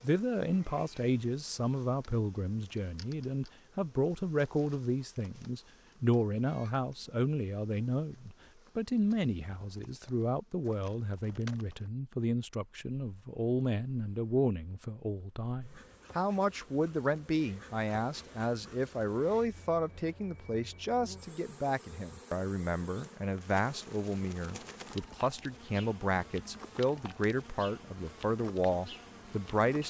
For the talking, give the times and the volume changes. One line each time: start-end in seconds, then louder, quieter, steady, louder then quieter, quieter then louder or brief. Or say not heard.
0.0-29.8 steady.